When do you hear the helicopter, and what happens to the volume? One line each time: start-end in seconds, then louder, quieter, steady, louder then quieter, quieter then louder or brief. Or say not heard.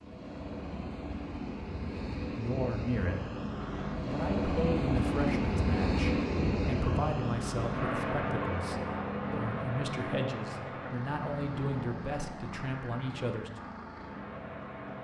0.0-15.0 louder then quieter.